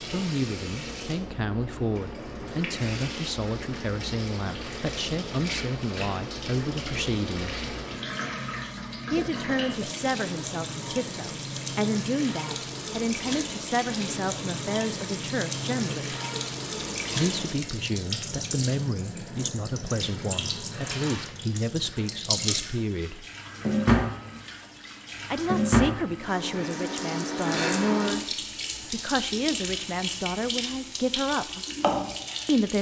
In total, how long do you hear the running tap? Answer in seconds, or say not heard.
33 s.